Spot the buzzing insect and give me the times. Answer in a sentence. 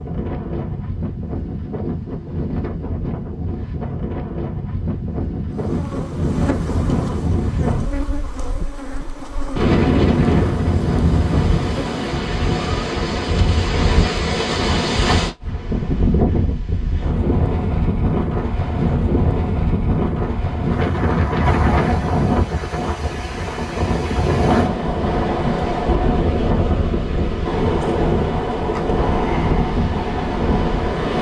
The buzzing insect can be heard from 5.5 to 12.1 s.